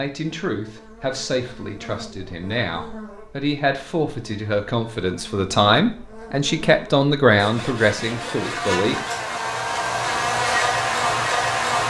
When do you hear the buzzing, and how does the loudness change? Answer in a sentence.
You can hear the buzzing from 0.1 to 11.8 s, getting louder.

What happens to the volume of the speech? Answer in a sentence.
The volume of the speech goes up.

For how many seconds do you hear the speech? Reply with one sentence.
The speech can be heard for 9 seconds in total.